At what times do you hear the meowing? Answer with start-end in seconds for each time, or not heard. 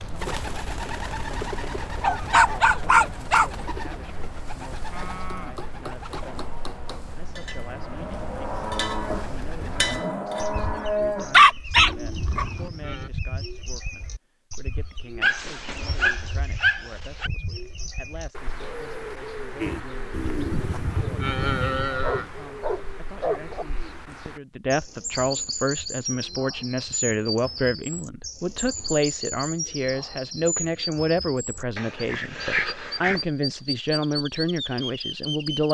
not heard.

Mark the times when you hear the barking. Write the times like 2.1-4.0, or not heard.
2.0-3.5, 11.3-12.7, 15.2-17.3, 22.0-23.6, 31.8-33.2.